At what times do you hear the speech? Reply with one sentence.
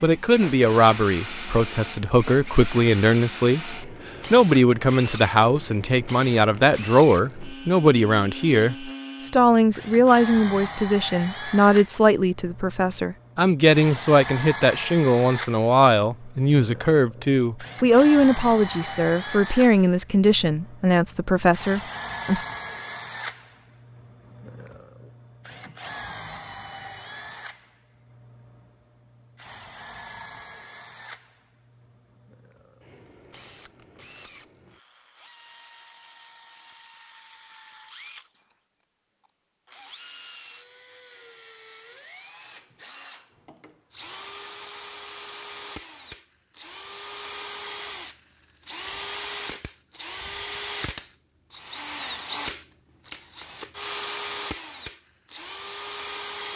The speech can be heard from 0.0 to 22.4 s.